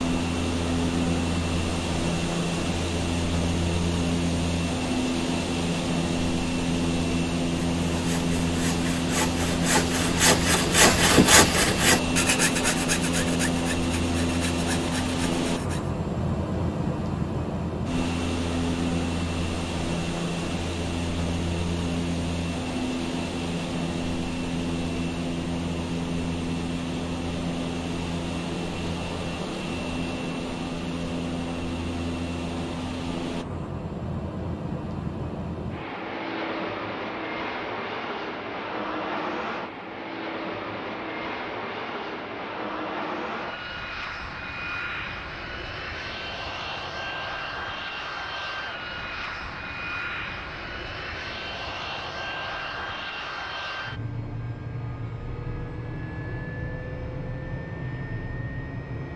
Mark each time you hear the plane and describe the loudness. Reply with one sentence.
You can hear the plane from 0.0 to 59.1 s, getting quieter.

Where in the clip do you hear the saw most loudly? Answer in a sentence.
The loudest moment of the saw is at 11 seconds.